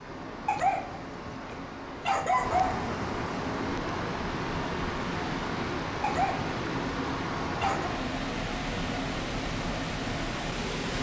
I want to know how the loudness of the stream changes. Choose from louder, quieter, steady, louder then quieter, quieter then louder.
louder.